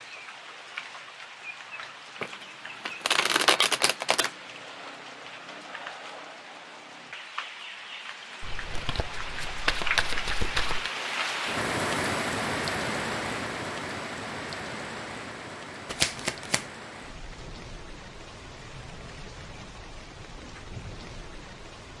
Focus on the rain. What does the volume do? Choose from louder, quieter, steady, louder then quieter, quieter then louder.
louder then quieter.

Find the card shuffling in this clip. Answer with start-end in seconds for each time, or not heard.
2.2-4.3, 8.4-10.9, 15.8-16.6.